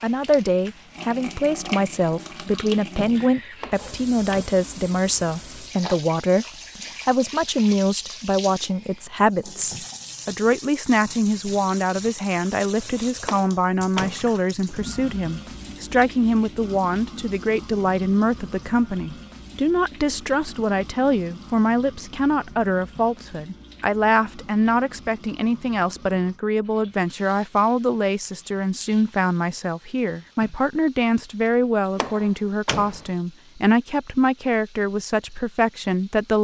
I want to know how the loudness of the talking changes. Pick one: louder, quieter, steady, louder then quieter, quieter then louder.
steady.